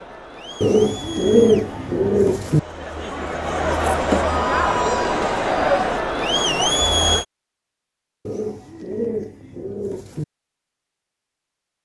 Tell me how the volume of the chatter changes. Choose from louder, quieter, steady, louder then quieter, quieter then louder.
louder.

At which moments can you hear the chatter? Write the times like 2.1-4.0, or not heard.
0.0-7.2.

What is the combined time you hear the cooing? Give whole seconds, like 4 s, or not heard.
4 s.